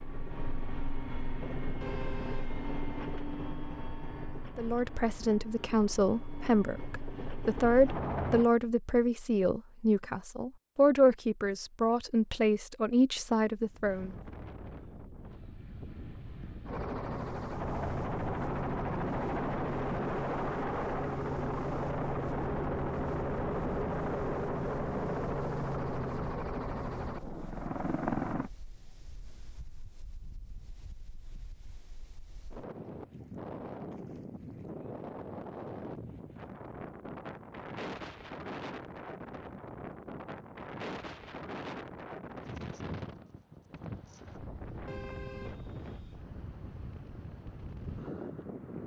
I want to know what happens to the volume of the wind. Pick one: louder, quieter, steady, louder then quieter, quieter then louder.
quieter then louder.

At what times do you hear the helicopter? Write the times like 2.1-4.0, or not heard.
0.0-8.5, 16.6-28.5.